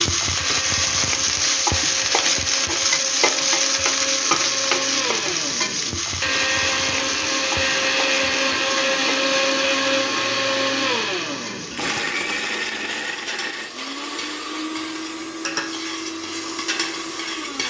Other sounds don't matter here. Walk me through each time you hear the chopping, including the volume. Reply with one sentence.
The chopping can't be heard in this clip.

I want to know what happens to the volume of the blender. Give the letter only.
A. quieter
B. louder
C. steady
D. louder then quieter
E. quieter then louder
D.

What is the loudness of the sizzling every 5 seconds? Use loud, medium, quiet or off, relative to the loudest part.
loud, medium, quiet, medium.